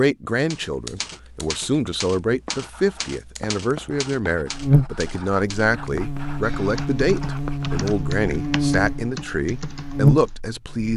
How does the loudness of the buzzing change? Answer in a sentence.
The volume of the buzzing goes up.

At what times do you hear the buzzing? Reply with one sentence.
The buzzing can be heard from 4.5 to 10.9 s.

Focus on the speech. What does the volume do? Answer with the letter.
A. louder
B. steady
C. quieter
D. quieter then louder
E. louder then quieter
B.